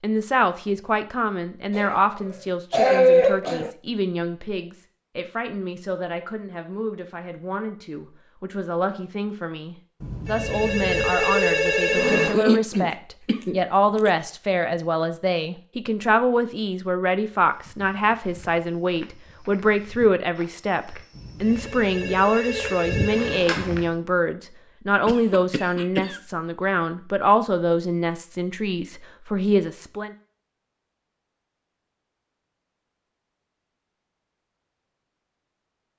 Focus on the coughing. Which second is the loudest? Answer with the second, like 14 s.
3 s.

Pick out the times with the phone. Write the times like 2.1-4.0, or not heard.
10.0-12.3, 21.1-23.9.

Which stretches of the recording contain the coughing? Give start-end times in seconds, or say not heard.
1.7-3.7, 12.3-14.1, 25.1-26.2.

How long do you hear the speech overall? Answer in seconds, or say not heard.
30 s.